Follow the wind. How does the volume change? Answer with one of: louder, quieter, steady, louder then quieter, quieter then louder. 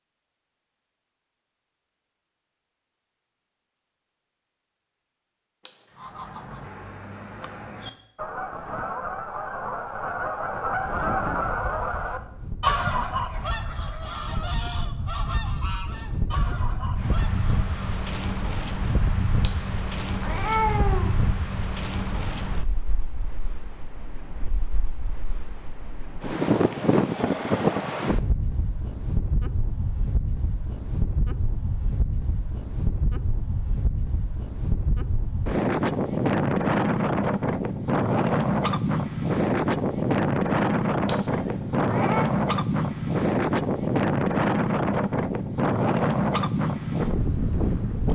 louder.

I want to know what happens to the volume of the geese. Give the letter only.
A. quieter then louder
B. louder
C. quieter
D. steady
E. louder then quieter
E.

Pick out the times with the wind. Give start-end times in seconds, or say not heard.
10.8-48.0.